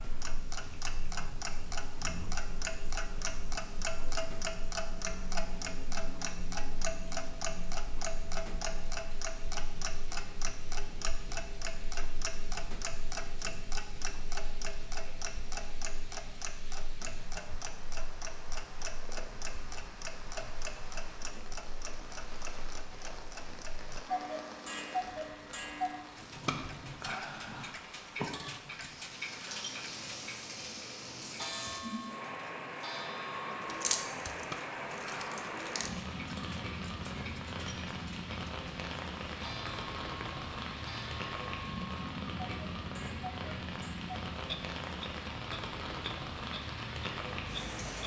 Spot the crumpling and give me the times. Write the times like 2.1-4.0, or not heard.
33.6-35.9.